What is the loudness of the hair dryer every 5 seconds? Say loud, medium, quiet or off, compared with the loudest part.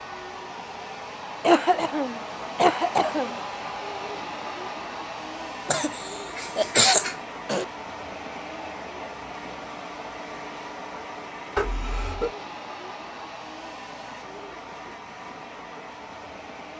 loud, loud, loud, medium.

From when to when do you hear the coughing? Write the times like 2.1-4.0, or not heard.
1.4-3.4, 5.7-7.7, 11.6-12.3.